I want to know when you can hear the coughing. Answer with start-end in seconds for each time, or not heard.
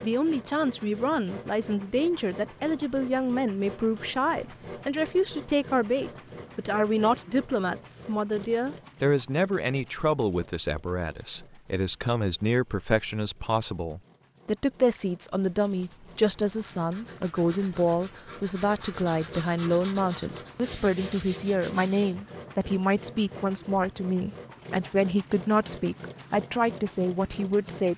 not heard.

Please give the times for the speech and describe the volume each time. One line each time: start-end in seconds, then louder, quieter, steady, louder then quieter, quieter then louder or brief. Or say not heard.
0.0-27.9 steady.